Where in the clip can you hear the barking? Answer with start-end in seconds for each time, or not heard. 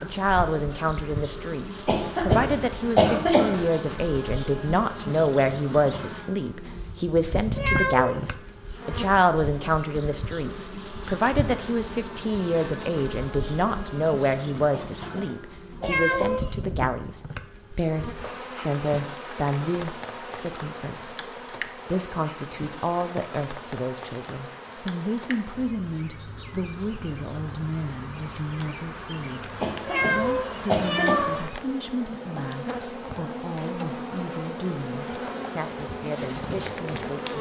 not heard.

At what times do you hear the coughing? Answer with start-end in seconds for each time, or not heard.
1.9-3.5, 14.7-16.4, 29.6-31.3.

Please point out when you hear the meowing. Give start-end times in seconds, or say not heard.
7.5-8.2, 15.8-16.5, 29.9-31.6.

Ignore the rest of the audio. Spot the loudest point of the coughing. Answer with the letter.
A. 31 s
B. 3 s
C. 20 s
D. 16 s
B.